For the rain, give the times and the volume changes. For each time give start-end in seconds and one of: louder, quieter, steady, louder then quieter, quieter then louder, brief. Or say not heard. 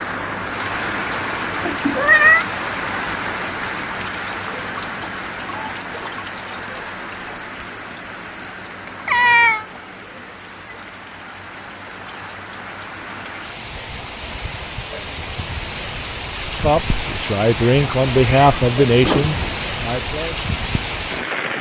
0.0-21.5 quieter then louder.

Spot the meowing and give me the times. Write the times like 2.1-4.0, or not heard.
1.6-2.5, 9.1-9.7, 18.2-19.6.